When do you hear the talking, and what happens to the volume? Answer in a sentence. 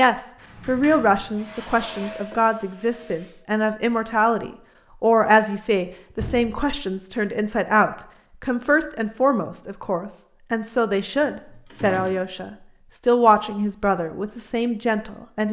The talking can be heard from 0.0 to 15.4 s, at a steady volume.